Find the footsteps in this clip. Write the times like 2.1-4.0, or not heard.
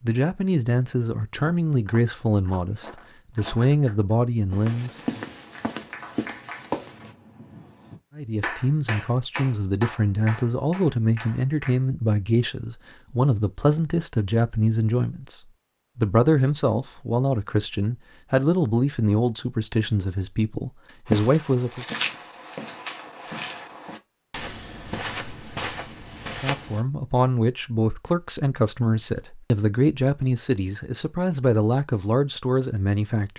1.4-7.2, 21.1-26.9.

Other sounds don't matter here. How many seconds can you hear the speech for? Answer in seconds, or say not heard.
26 s.